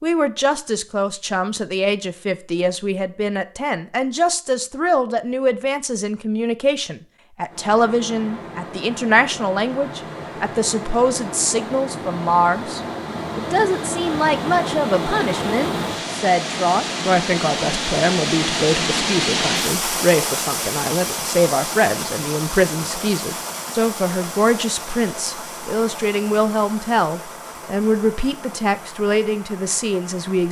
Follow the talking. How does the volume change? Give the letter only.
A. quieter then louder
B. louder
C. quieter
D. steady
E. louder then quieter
D.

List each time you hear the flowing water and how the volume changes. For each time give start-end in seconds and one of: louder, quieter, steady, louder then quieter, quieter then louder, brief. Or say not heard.
7.5-30.4 louder then quieter.